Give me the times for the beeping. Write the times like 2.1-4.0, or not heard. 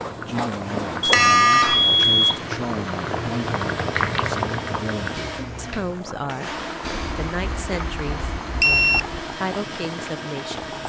1.0-2.2, 6.8-9.2.